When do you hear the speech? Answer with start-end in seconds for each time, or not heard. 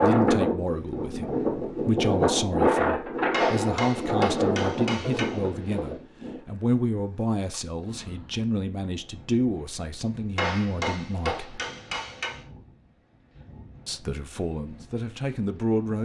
0.0-11.6, 13.8-16.0.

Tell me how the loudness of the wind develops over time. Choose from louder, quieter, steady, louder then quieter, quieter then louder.
quieter.